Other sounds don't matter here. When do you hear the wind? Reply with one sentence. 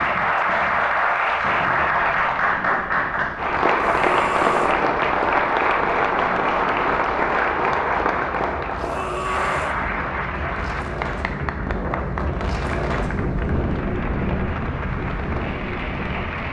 You can hear the wind from 0.0 to 16.4 s.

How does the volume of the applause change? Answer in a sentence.
The volume of the applause goes down.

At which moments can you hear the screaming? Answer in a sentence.
The screaming can be heard from 3.8 to 4.8 s and from 8.8 to 9.8 s.